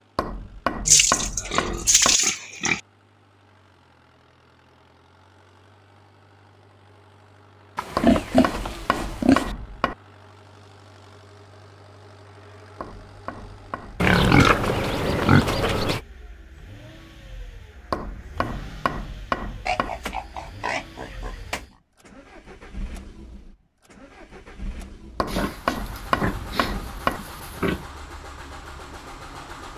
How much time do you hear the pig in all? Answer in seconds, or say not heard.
10 s.